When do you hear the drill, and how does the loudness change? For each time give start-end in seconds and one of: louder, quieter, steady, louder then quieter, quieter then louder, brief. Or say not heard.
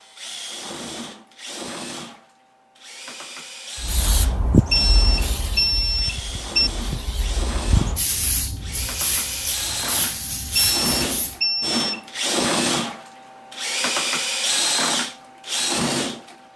0.0-16.5 louder.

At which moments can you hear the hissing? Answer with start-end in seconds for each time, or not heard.
3.8-11.4.